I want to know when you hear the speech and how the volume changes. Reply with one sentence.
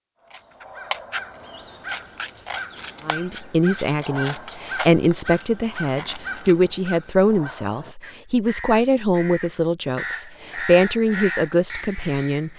The speech can be heard from 3.0 to 12.5 s, at a steady volume.